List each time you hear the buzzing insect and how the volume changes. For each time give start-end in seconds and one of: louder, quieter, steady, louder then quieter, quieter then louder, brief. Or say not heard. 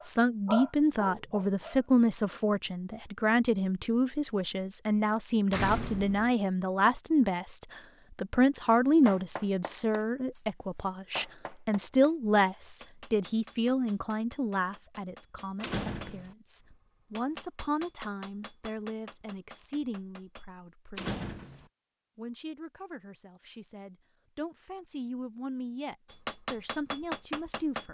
not heard.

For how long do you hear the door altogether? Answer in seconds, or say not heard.
2 s.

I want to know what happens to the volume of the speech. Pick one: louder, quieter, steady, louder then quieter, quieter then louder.
quieter.